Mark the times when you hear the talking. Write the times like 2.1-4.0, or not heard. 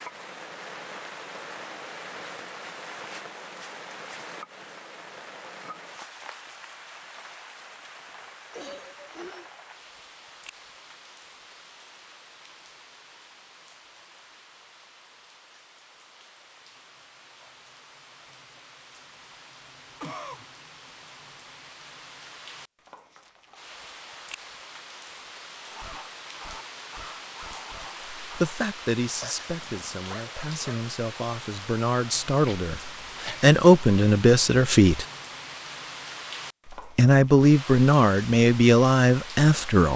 28.2-35.0, 37.0-39.9.